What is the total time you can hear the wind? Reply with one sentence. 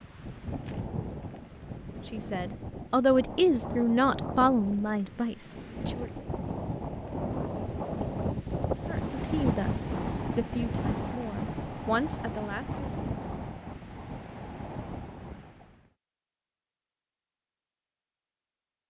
The wind can be heard for 16 seconds in total.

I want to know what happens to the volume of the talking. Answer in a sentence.
The volume of the talking goes down.